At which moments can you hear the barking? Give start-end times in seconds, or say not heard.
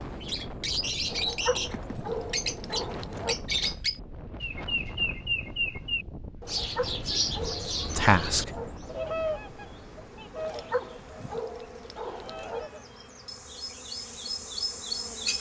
1.1-3.4, 6.4-8.7, 10.3-12.7.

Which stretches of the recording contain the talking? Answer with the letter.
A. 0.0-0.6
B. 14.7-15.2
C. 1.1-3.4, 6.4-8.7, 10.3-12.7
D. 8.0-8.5
D.